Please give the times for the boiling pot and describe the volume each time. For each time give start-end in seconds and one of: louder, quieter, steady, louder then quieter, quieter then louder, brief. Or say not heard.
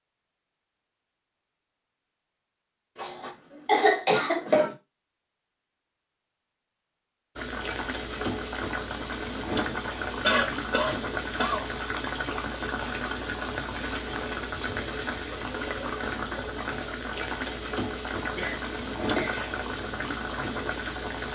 7.3-21.3 steady.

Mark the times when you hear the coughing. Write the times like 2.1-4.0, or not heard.
3.0-4.8, 10.2-11.7, 18.4-19.5.